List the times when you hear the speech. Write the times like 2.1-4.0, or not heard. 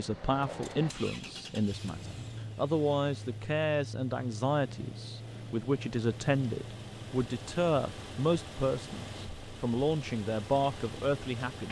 0.0-11.6.